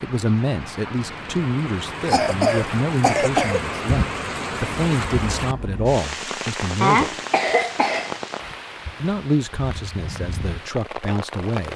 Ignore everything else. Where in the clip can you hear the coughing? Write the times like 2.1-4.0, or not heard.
2.0-3.8, 6.8-8.2.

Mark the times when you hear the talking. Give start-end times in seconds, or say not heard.
0.0-7.2, 9.0-11.7.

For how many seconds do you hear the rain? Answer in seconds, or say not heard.
12 s.